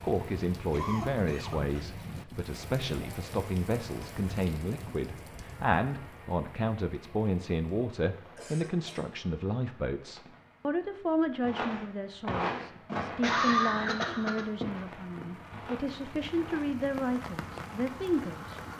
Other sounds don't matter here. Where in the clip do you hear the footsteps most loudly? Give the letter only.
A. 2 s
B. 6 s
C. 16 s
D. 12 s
D.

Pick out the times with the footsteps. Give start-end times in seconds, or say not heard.
11.4-16.8.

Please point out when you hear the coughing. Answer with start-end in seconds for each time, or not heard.
0.7-1.8, 8.3-9.2, 13.1-14.4.